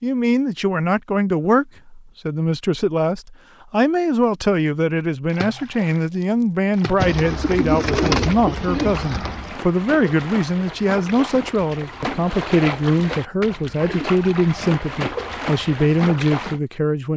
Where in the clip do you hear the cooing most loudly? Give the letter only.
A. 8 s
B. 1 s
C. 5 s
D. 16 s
A.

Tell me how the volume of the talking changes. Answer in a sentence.
The volume of the talking stays about the same.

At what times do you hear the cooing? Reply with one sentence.
You can hear the cooing from 7.0 to 9.6 s.